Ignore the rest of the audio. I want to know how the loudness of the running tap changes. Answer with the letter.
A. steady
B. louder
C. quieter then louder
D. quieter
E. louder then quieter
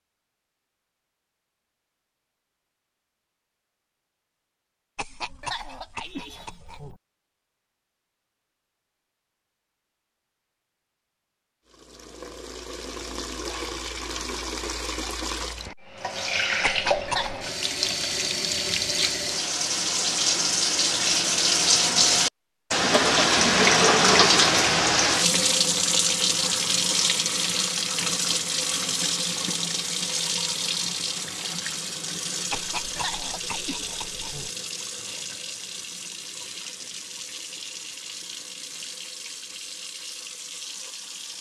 E.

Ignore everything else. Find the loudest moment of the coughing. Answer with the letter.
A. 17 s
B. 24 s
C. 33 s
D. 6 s
A.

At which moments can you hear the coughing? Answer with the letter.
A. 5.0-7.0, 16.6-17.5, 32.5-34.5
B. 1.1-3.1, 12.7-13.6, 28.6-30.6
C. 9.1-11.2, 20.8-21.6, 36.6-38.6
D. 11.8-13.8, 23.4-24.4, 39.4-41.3
A.